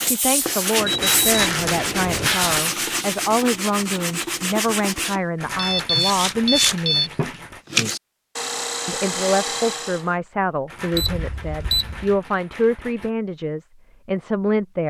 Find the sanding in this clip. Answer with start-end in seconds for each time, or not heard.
0.0-10.2.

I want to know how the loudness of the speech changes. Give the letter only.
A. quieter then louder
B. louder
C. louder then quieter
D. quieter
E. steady
E.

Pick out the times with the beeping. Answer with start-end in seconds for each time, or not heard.
0.8-2.4, 5.5-7.1, 10.9-12.2.